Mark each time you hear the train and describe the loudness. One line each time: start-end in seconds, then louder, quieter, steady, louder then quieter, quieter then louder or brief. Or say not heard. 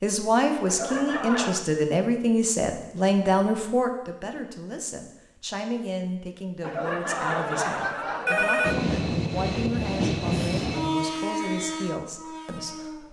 8.6-13.0 quieter.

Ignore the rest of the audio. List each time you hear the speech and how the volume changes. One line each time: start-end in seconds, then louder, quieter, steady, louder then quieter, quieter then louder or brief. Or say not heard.
0.0-13.0 quieter.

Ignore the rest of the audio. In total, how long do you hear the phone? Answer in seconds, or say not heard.
3 s.